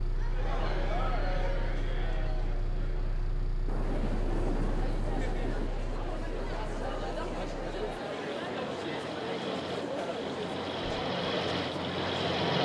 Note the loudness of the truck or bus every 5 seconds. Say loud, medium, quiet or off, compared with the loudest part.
medium, medium, loud.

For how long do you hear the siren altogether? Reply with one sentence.
The siren can't be heard in this clip.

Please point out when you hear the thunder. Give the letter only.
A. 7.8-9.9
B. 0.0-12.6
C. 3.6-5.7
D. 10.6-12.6
C.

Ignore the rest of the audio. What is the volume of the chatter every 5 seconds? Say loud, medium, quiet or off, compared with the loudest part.
medium, loud, loud.